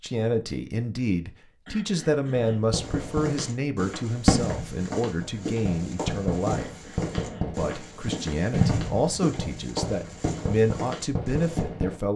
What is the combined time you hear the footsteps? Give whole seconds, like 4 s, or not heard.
9 s.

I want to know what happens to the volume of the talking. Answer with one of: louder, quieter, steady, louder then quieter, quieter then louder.
steady.